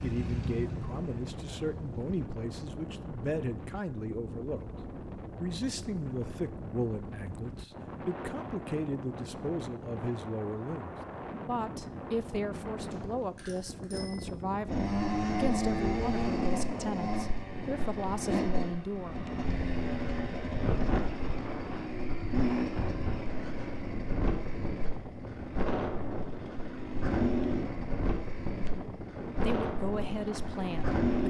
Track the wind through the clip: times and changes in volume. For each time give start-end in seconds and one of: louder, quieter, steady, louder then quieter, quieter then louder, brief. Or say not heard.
0.0-31.2 steady.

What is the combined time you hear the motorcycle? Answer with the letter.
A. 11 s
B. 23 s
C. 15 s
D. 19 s
D.